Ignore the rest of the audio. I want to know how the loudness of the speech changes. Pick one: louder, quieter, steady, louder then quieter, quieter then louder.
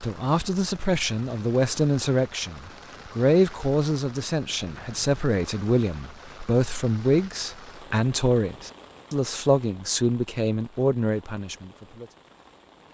steady.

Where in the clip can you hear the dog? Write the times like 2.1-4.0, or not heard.
not heard.